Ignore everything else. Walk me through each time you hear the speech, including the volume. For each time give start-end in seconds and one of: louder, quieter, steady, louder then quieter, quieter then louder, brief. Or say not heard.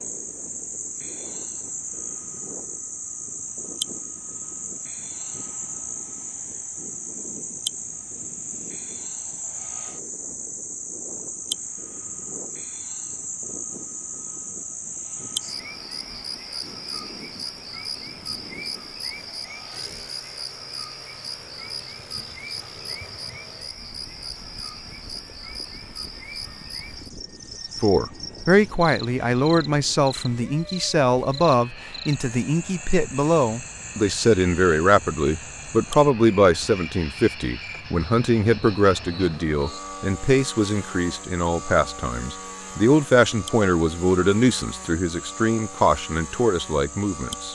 27.8-47.5 steady.